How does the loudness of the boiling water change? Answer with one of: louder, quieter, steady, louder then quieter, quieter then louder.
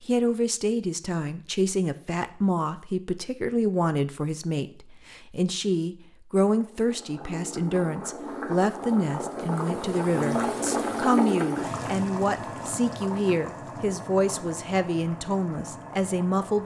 louder then quieter.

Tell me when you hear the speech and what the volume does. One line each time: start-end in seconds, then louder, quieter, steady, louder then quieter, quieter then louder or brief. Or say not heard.
0.0-16.6 steady.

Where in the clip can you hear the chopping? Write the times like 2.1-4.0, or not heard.
not heard.